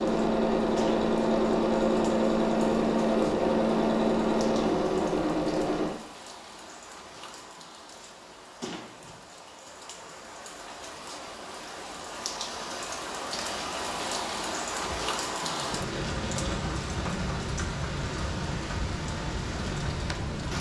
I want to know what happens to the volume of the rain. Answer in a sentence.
The loudness of the rain goes up.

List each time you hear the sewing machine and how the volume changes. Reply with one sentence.
You can hear the sewing machine from 0.0 to 5.9 s, at a steady volume; and briefly from 14.8 to 16.6 s.